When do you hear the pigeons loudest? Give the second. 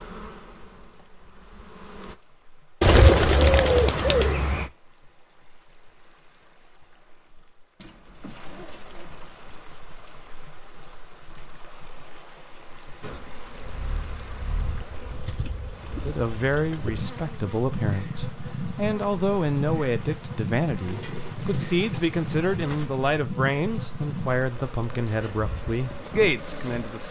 3 s.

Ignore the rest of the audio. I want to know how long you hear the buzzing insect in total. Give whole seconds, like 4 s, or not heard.
16 s.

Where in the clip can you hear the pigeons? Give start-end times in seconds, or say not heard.
2.8-4.7, 7.8-9.7, 15.2-16.9, 20.9-22.9.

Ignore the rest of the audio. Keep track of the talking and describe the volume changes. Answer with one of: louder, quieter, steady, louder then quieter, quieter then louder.
steady.